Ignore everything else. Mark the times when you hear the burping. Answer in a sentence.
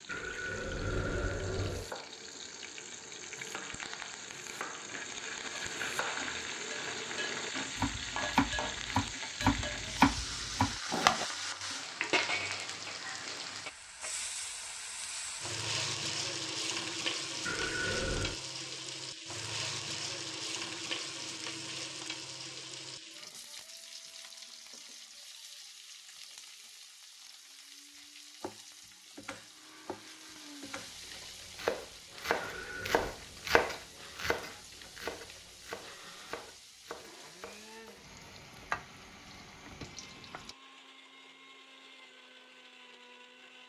The burping can be heard from 0.1 to 1.9 s, from 17.4 to 18.4 s and from 32.4 to 33.1 s.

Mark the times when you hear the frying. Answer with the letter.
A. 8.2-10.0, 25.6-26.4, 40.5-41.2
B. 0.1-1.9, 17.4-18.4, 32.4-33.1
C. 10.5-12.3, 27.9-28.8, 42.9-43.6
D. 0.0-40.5
D.